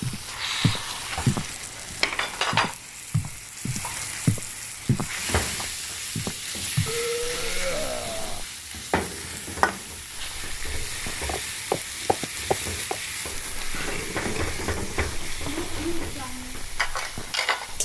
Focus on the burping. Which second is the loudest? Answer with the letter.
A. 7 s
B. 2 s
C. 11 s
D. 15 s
A.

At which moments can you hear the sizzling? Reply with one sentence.
The sizzling can be heard from 0.0 to 17.8 s.